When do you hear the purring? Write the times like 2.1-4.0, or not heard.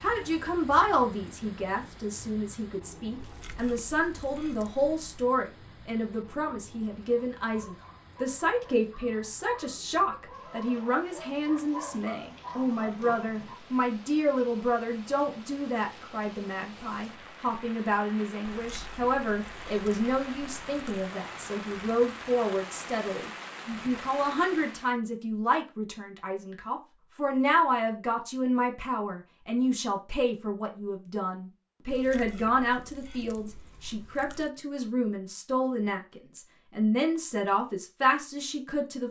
not heard.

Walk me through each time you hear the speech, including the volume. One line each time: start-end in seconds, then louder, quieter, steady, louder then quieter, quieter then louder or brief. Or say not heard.
0.0-39.0 steady.